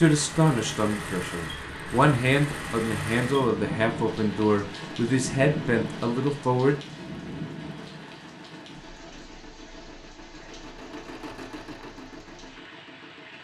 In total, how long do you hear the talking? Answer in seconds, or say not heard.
7 s.